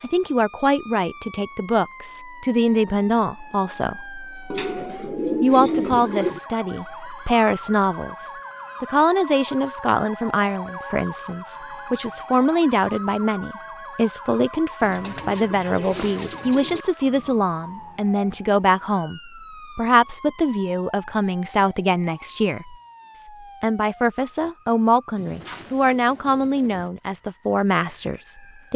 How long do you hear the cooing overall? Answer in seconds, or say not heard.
6 s.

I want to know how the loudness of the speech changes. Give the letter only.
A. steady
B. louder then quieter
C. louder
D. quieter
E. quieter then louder
A.